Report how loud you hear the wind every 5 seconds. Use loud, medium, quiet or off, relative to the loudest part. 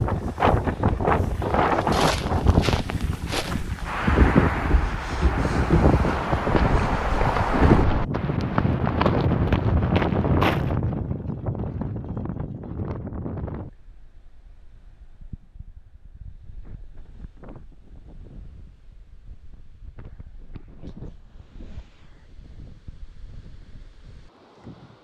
loud, loud, medium, quiet, quiet.